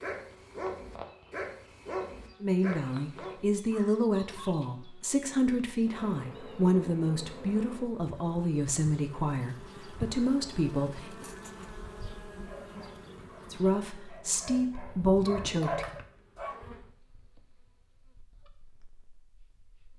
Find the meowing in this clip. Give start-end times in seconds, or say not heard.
not heard.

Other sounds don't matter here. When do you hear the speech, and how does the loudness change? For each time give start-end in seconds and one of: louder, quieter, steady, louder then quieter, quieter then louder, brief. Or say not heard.
2.4-11.2 steady
13.5-15.8 brief.